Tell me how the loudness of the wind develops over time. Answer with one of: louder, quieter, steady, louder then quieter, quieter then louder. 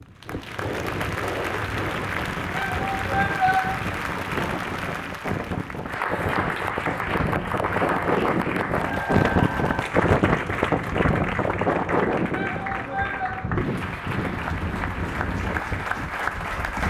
louder then quieter.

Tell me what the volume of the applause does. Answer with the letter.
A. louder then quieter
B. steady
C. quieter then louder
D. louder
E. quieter
B.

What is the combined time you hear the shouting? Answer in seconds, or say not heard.
2 s.